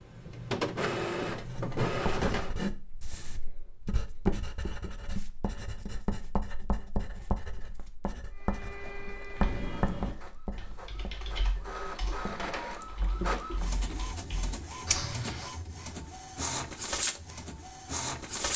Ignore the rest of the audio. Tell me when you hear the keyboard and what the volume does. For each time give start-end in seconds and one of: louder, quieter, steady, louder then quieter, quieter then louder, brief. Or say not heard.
9.3-15.5 quieter then louder.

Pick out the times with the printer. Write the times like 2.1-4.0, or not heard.
0.0-2.5, 8.3-18.5.